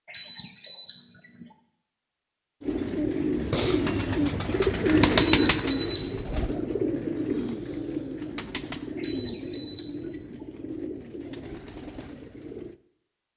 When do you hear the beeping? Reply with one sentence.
You can hear the beeping from 0.1 to 1.0 s, from 5.3 to 6.0 s and from 9.0 to 9.9 s.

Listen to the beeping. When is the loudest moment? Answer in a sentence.
The volume of the beeping peaks at 6 seconds.